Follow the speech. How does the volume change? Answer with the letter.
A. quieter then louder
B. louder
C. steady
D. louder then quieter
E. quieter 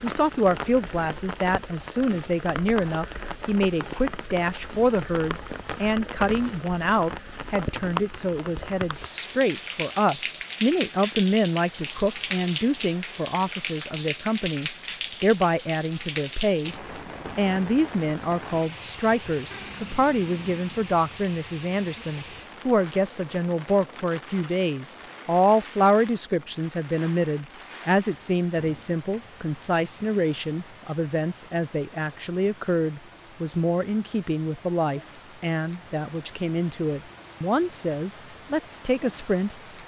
C.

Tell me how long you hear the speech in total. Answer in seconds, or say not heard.
39 s.